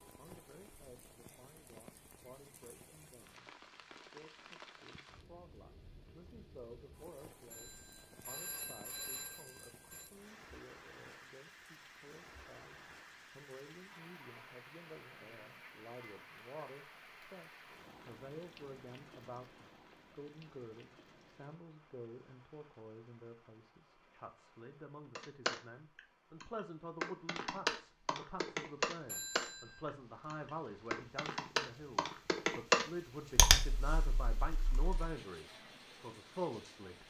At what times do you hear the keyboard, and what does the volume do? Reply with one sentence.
The keyboard can be heard from 25.1 to 35.1 s, getting louder.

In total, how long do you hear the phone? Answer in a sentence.
You can hear the phone for 3 seconds altogether.